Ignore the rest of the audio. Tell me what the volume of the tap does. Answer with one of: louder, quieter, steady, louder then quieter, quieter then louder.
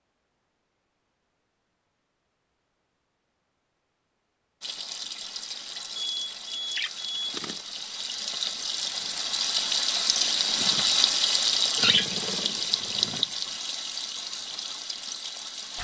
louder then quieter.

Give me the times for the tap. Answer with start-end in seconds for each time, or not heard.
4.6-15.7.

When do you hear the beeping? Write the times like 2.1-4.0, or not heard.
6.0-7.4.